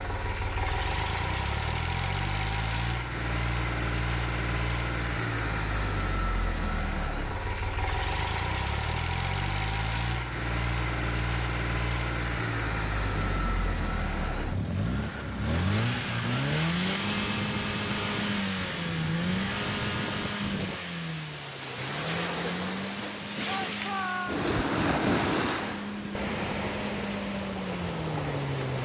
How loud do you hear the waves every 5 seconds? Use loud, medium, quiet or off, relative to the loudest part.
off, off, medium, medium, loud, loud.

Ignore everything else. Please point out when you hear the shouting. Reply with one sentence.
The shouting can be heard from 23.4 to 24.4 s.